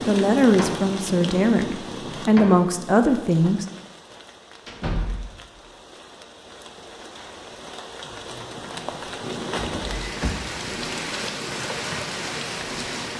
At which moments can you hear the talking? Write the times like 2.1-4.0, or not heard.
0.1-3.6.